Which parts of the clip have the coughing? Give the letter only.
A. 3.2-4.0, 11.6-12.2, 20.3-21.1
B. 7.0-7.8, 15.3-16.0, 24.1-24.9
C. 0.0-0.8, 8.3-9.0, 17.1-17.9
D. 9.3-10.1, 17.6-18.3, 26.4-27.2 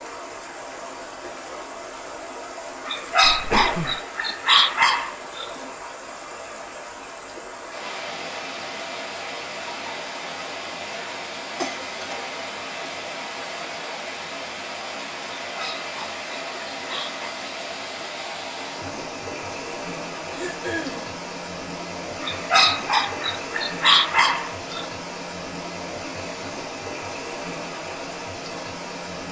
A.